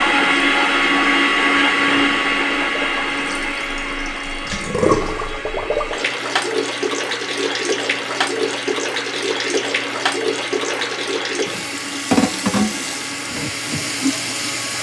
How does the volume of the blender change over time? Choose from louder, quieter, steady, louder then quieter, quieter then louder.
quieter.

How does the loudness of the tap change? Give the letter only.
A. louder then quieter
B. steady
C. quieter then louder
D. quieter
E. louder
E.